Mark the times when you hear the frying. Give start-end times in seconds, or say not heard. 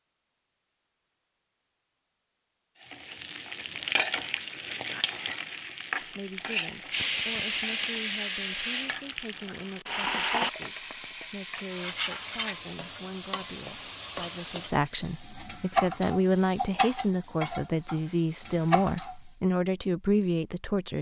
2.8-19.4.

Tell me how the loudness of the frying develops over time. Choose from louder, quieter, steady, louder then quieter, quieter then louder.
steady.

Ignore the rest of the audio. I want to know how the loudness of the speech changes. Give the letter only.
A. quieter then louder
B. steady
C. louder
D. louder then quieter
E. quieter
C.